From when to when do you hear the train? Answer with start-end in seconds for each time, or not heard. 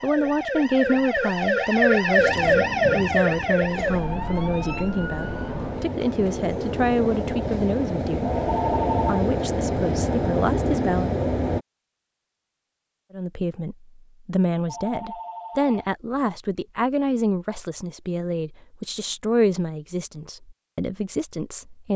2.1-11.7.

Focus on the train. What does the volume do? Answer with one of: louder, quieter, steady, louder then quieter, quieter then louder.
louder.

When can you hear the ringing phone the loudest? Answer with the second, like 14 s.
9 s.